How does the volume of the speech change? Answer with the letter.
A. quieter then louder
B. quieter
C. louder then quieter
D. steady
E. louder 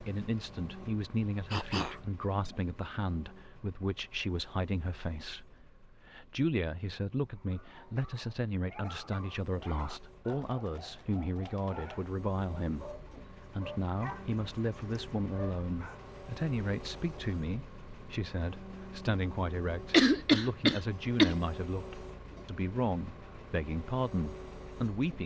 D.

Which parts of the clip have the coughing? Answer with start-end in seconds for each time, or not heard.
1.5-2.6, 19.9-21.4.